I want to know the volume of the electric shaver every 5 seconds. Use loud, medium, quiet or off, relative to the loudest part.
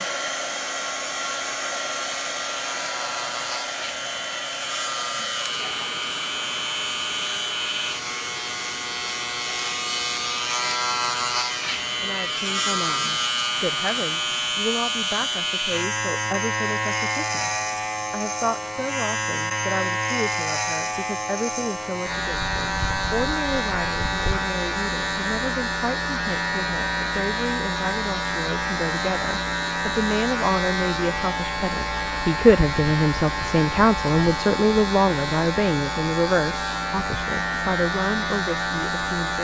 medium, loud, loud, loud, loud, loud, loud, loud.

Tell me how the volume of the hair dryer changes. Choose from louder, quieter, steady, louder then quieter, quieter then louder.
quieter.